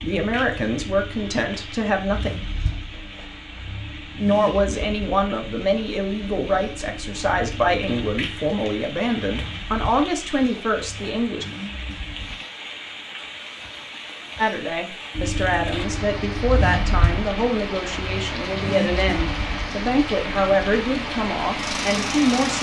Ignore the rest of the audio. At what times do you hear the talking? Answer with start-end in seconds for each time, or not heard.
0.0-2.3, 4.2-11.4, 14.3-22.5.